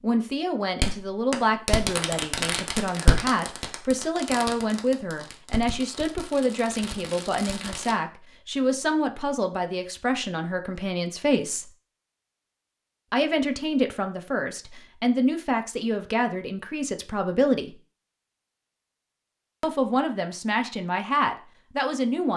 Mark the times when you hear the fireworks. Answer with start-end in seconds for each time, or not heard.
0.8-8.0.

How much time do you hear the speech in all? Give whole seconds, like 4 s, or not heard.
19 s.